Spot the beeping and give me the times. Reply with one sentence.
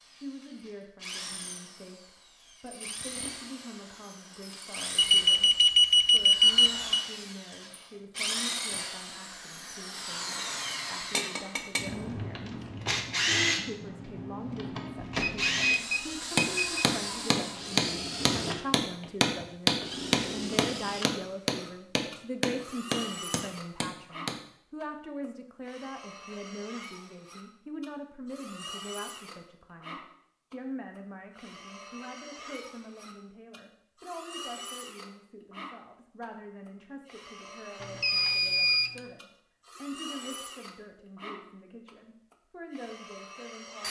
The beeping can be heard from 5.0 to 7.0 s, from 15.1 to 16.9 s and from 37.8 to 39.0 s.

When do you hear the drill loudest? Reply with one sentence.
The loudest moment of the drill is at 13 seconds.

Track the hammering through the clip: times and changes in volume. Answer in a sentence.
You can hear the hammering from 16.4 to 24.4 s, getting quieter.